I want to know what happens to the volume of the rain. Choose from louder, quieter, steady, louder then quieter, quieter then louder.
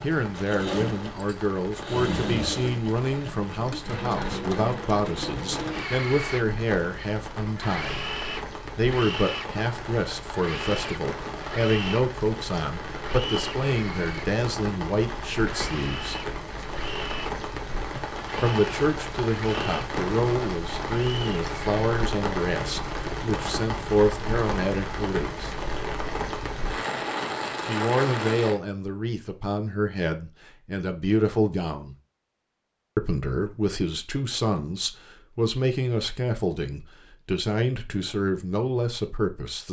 louder.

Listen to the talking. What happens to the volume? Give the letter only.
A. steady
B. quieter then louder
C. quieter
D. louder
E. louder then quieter
A.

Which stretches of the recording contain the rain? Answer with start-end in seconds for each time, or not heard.
0.0-28.6.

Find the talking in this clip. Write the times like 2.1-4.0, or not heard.
0.0-8.1, 8.8-16.2, 18.4-25.5, 27.6-31.9, 33.0-39.6.